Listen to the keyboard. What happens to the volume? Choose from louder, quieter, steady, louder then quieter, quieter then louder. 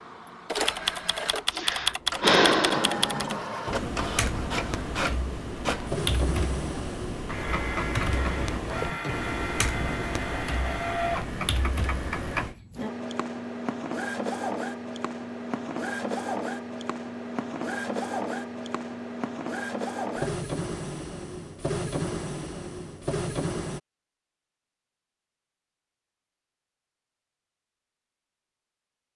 quieter.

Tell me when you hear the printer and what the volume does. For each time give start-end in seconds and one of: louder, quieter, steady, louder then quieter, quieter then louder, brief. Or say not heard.
0.0-23.8 steady.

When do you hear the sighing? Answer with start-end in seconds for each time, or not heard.
1.5-3.0.